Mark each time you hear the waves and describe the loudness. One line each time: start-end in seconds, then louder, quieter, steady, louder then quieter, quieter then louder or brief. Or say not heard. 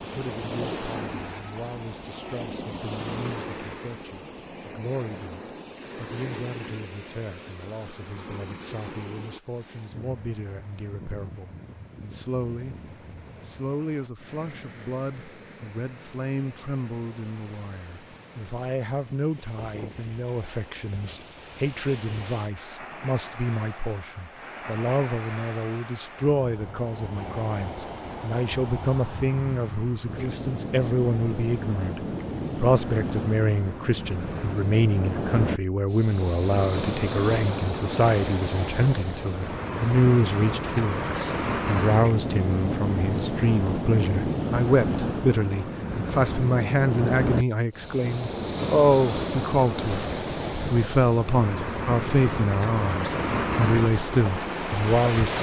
0.0-55.3 quieter then louder.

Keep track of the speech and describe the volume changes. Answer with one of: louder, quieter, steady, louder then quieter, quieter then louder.
louder.